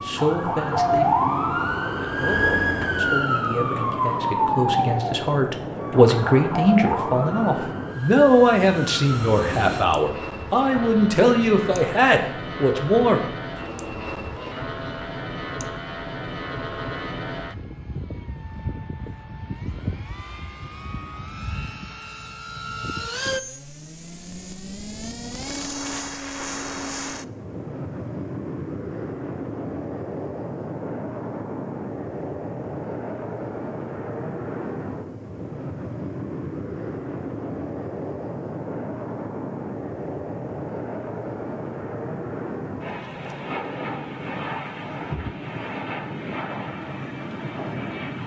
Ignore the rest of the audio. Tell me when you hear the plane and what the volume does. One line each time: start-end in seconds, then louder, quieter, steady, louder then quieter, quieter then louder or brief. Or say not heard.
0.0-48.2 steady.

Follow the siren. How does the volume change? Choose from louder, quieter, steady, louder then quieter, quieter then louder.
quieter.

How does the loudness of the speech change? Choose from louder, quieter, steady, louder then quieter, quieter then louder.
louder.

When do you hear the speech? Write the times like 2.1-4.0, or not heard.
0.0-13.2.